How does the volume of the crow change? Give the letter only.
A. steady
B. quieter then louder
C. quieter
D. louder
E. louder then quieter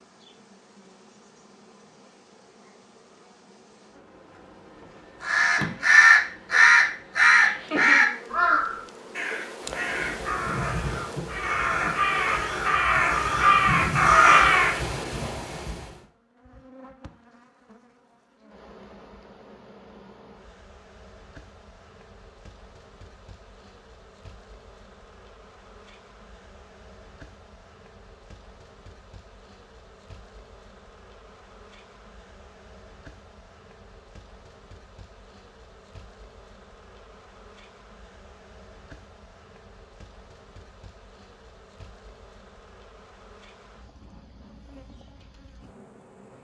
B.